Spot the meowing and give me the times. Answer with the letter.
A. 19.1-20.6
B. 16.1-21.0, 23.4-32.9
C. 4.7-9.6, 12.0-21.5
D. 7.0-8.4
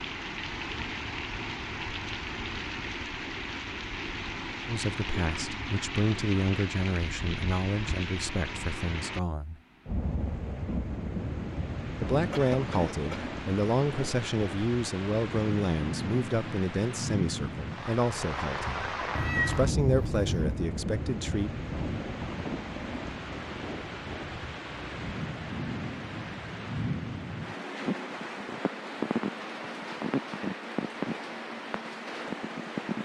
A.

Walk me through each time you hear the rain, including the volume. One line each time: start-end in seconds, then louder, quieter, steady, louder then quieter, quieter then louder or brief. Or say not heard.
0.0-32.9 steady.